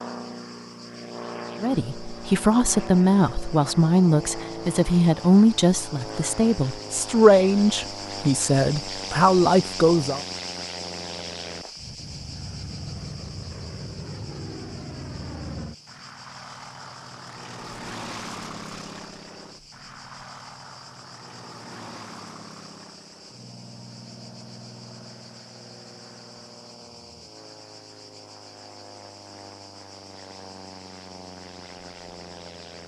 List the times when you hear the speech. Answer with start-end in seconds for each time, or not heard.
1.6-10.2.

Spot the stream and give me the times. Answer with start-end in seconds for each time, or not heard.
not heard.